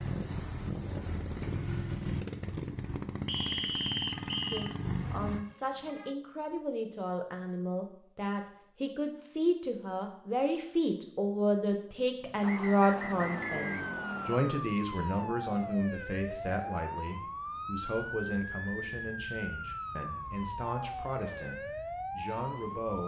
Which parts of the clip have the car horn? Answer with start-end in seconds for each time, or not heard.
not heard.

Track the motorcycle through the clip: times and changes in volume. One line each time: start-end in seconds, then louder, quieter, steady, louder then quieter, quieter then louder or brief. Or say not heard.
0.0-5.4 steady
12.2-14.4 brief.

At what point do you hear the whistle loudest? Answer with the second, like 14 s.
4 s.